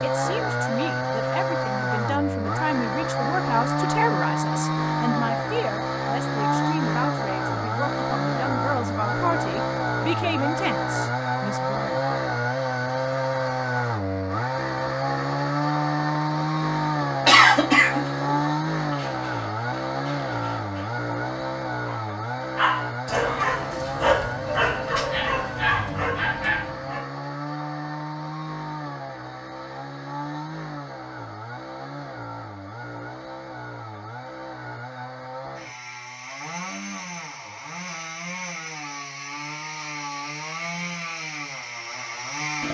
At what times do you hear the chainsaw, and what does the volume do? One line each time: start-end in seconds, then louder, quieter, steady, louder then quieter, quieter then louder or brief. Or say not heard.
0.0-42.6 quieter.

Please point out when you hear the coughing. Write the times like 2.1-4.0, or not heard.
17.2-18.5.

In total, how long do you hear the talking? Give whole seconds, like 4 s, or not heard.
12 s.